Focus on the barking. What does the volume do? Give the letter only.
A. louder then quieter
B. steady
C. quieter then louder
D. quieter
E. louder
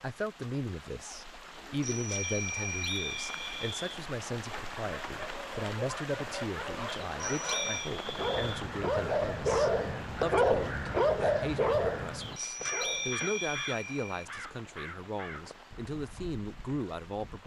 E.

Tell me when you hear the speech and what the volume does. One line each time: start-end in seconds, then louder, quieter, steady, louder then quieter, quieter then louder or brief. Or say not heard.
0.0-17.4 steady.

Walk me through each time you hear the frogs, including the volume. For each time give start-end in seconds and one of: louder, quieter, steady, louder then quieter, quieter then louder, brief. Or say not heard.
not heard.